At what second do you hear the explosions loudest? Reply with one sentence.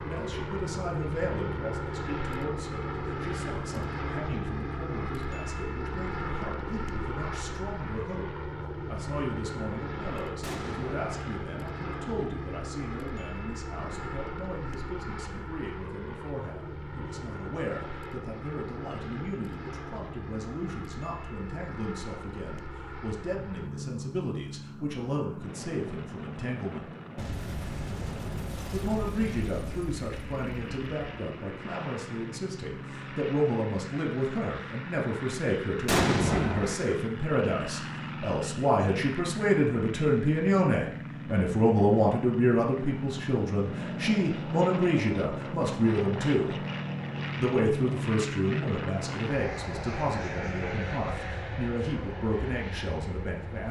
The volume of the explosions peaks at 36 seconds.